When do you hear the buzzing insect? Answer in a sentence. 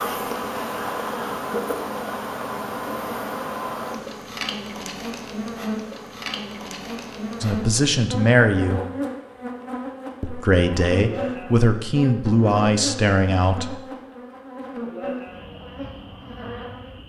You can hear the buzzing insect from 0.0 to 17.0 s.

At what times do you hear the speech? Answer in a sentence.
The speech can be heard from 7.4 to 8.8 s and from 10.2 to 13.9 s.